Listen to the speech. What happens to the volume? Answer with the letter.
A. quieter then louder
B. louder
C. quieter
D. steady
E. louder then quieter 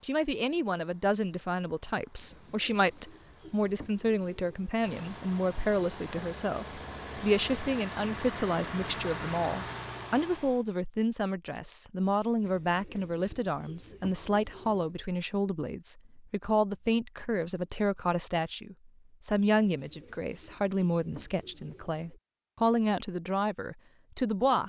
D.